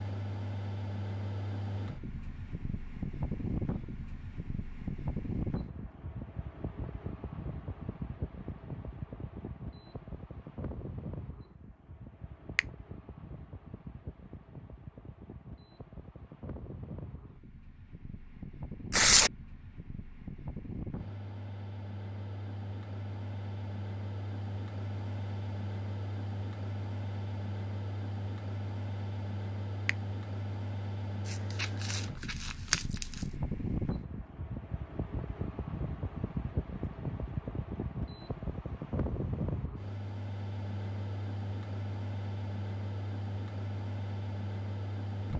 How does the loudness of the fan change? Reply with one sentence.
The volume of the fan goes down, then up.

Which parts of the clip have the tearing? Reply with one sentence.
You can hear the tearing from 18.9 to 19.3 s and from 31.2 to 33.2 s.